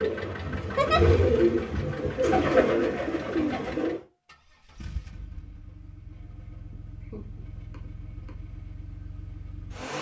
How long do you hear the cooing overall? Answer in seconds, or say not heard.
4 s.